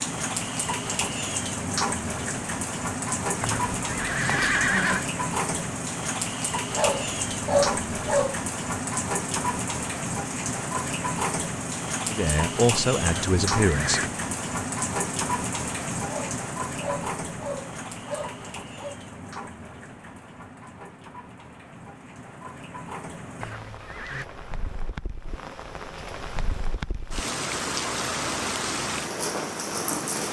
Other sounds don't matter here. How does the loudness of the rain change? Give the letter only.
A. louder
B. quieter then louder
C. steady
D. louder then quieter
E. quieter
B.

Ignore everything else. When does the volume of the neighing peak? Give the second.
5 s.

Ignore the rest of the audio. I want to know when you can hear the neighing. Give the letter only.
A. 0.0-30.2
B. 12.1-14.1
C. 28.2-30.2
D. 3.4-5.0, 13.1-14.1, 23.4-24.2
D.